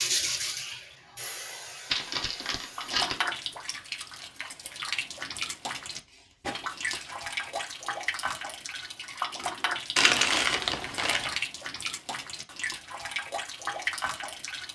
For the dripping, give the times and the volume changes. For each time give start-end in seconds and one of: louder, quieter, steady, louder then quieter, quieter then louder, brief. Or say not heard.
2.8-14.7 steady.